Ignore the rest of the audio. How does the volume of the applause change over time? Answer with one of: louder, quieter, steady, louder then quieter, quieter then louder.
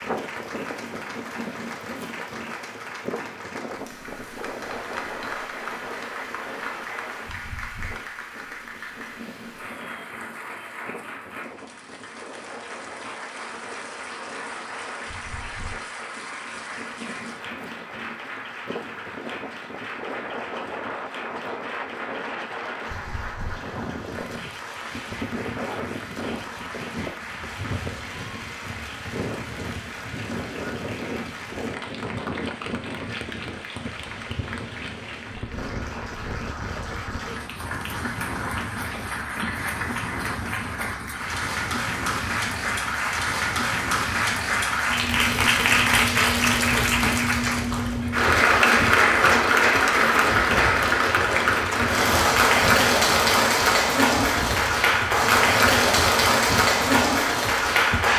louder.